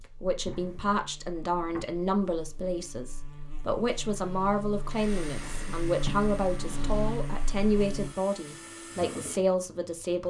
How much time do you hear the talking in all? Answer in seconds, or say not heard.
10 s.